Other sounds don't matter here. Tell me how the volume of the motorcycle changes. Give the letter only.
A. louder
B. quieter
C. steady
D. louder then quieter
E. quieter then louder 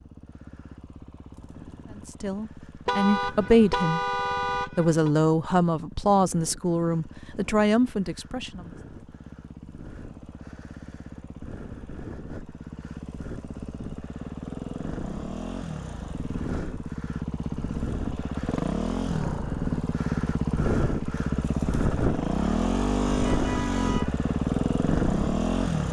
A.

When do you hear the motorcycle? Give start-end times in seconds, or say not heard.
0.0-25.8.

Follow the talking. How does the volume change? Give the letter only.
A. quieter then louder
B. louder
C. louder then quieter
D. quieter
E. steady
E.